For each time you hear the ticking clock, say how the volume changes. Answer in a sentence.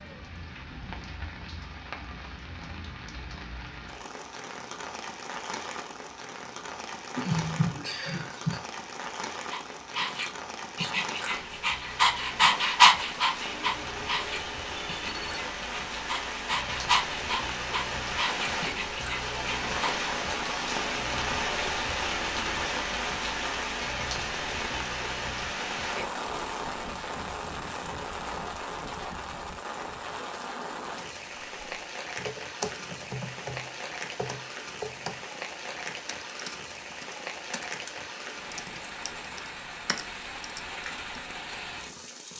The ticking clock can't be heard in this clip.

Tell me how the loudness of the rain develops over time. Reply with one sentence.
The loudness of the rain goes up, then down.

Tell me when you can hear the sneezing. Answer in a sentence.
The sneezing can be heard from 7.2 to 8.6 s.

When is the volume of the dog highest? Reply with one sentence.
The loudest moment of the dog is at 13 seconds.